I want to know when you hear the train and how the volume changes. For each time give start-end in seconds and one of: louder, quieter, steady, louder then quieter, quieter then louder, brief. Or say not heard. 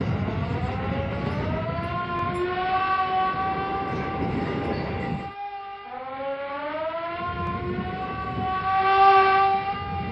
0.0-5.3 quieter then louder
7.0-10.0 brief.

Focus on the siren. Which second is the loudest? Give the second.
9 s.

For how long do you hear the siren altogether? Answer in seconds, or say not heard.
10 s.